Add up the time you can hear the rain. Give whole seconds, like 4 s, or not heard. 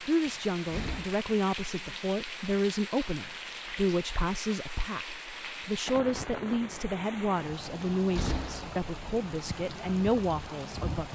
11 s.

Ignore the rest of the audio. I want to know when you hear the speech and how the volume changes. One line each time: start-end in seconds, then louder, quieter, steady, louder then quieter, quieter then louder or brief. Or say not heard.
0.0-11.0 steady.